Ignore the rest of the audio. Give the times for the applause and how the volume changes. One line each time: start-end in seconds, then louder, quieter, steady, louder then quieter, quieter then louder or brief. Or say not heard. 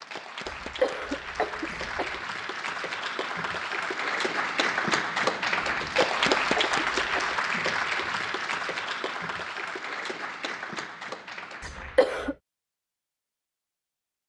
0.0-12.2 louder then quieter.